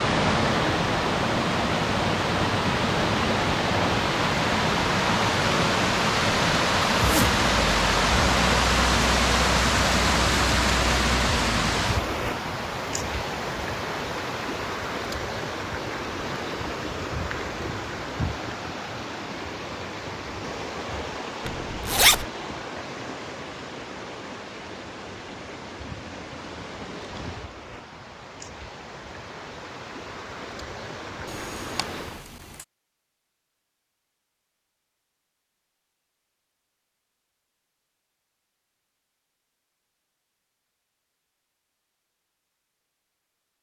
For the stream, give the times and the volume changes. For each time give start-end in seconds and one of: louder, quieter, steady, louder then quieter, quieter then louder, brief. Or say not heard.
0.0-32.2 quieter.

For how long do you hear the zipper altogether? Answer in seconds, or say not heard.
3 s.